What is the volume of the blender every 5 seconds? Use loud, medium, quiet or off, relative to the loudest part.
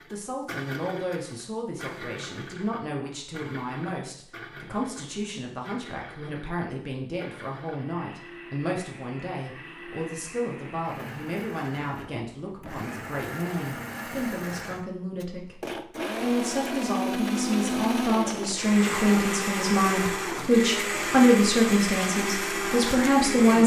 quiet, quiet, medium, loud, loud.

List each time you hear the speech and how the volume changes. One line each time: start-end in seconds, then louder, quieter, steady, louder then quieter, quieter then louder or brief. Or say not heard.
0.1-23.6 louder.